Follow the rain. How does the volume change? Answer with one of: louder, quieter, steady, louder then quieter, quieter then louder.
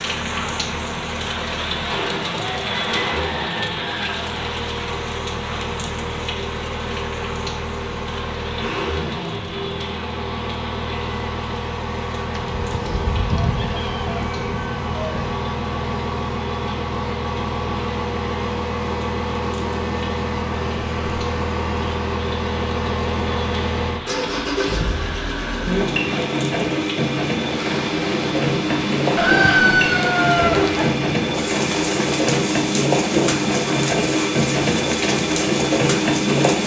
quieter then louder.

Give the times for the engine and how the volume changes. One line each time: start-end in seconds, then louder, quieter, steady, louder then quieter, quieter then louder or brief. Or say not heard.
0.0-36.6 louder.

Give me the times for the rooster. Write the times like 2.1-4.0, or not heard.
2.5-4.3, 12.3-15.3, 29.1-30.9.